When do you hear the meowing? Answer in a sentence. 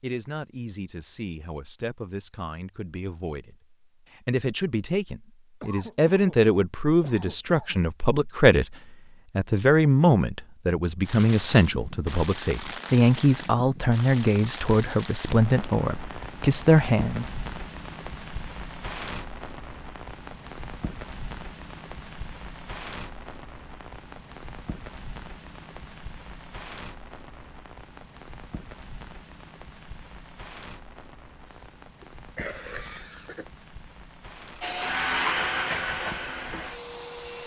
You can't hear the meowing here.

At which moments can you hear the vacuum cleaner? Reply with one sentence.
The vacuum cleaner can be heard from 34.6 to 37.4 s.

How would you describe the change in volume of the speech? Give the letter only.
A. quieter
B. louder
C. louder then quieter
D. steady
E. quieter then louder
B.